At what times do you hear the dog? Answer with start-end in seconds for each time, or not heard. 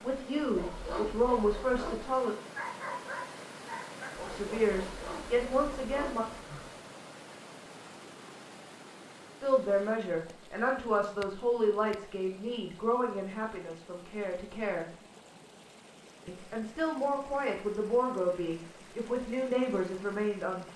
0.3-6.7.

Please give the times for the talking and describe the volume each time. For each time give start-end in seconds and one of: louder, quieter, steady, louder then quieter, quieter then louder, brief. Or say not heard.
0.0-2.4 brief
4.2-6.2 brief
9.4-14.9 quieter
16.2-20.7 steady.